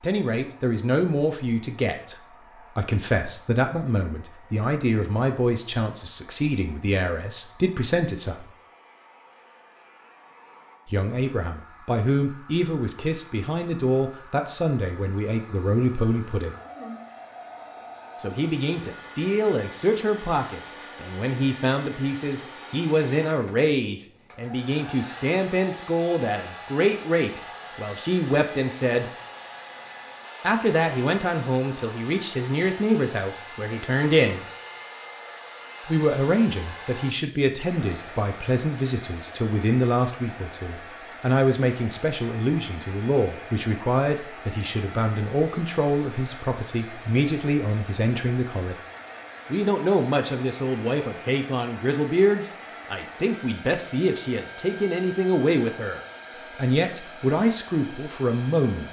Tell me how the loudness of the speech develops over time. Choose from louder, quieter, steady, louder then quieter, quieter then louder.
steady.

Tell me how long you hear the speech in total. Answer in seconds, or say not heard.
51 s.